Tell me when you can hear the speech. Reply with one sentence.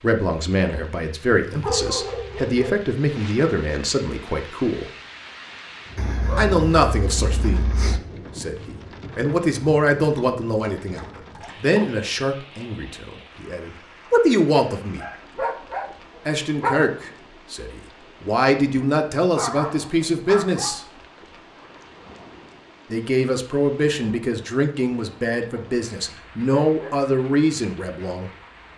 The speech can be heard from 0.0 to 4.9 s, from 6.3 to 15.1 s, from 16.2 to 20.9 s and from 22.9 to 28.3 s.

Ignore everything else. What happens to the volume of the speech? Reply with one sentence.
The loudness of the speech stays about the same.